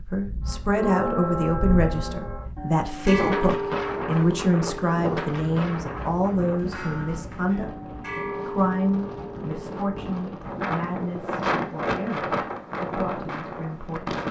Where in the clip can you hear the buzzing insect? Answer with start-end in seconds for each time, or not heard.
not heard.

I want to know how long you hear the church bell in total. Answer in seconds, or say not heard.
10 s.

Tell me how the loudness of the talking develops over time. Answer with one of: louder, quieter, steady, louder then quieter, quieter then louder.
quieter.